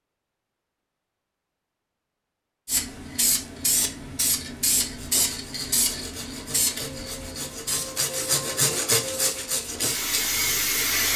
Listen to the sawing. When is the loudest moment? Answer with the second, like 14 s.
9 s.